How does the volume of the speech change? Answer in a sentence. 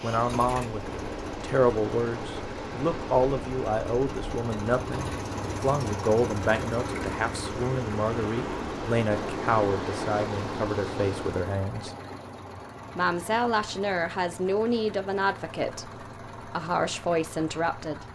The volume of the speech stays about the same.